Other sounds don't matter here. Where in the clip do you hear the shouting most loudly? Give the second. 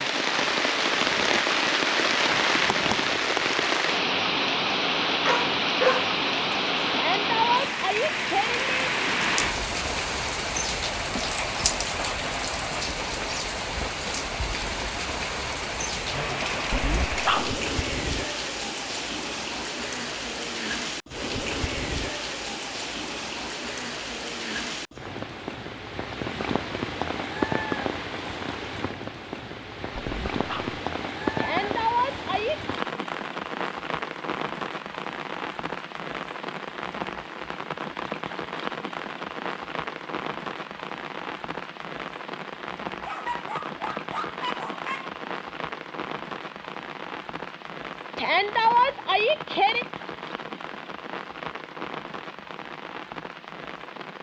49 s.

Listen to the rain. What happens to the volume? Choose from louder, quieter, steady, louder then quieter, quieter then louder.
quieter.